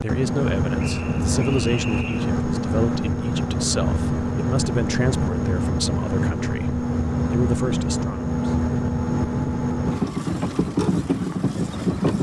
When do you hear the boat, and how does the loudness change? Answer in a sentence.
The boat can be heard from 0.0 to 12.1 s, at a steady volume.